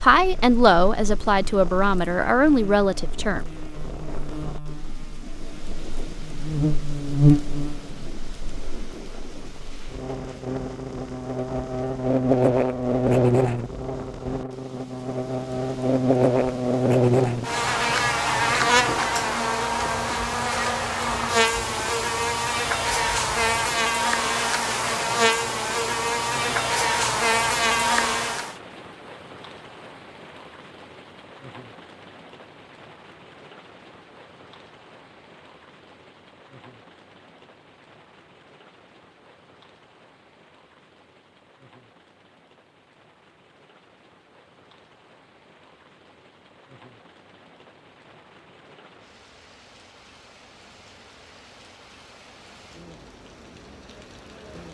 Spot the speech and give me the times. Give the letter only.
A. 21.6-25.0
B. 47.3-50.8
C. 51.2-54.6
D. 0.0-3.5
D.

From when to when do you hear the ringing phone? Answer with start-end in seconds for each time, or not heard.
not heard.